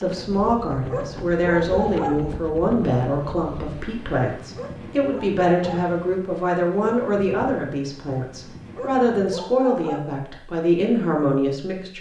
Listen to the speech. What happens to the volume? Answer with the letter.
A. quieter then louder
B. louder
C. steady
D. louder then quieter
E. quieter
C.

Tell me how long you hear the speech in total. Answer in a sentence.
You can hear the speech for 12 seconds altogether.